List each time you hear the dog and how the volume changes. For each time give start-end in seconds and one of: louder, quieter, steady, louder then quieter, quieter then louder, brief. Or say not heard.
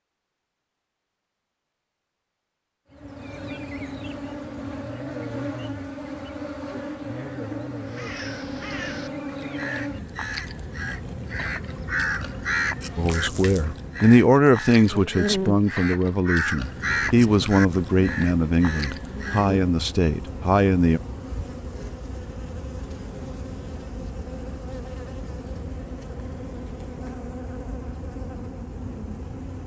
not heard.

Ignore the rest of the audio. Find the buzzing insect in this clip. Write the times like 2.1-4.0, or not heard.
2.9-29.6.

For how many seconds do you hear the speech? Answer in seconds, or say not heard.
8 s.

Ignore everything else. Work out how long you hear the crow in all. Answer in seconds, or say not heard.
12 s.